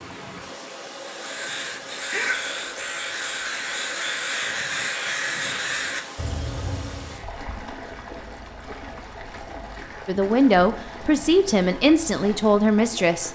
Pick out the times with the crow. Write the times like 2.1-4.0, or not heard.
1.0-7.2.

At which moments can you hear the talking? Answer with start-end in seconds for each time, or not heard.
10.1-13.3.